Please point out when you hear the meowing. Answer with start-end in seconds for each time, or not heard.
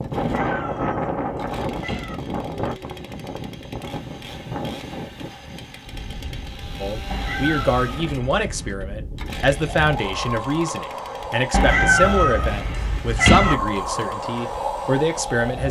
0.1-2.1, 7.1-8.8, 11.5-13.6.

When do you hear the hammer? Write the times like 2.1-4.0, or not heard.
not heard.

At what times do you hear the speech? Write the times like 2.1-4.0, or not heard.
6.8-15.6.